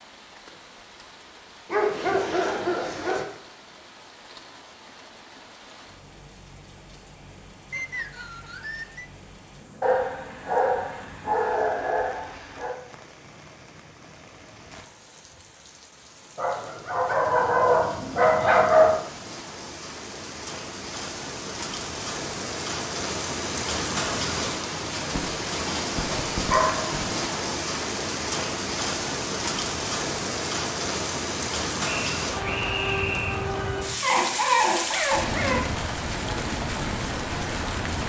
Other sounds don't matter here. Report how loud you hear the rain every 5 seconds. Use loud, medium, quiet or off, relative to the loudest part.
quiet, quiet, quiet, quiet, loud, loud, loud, loud.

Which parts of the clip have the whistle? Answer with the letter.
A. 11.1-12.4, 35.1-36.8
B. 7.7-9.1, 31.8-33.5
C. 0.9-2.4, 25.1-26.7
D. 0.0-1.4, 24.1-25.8
B.